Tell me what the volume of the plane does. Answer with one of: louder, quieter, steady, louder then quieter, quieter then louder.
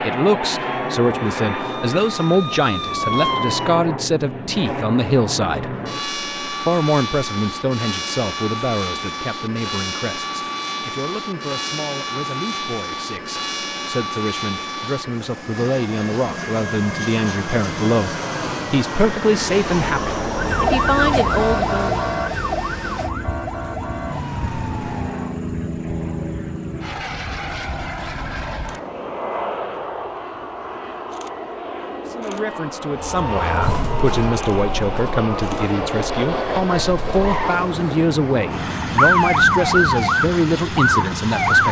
steady.